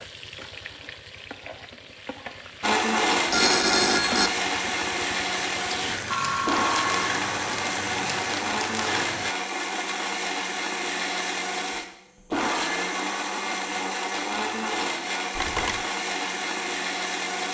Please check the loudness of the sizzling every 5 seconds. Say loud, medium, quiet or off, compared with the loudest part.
medium, loud, off, off.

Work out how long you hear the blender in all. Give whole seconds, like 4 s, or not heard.
15 s.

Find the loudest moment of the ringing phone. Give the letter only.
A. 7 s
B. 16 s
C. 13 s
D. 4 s
D.